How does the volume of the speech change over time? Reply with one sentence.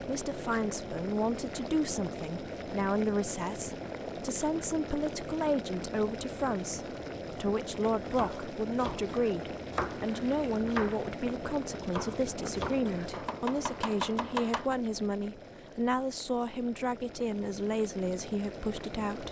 The loudness of the speech stays about the same.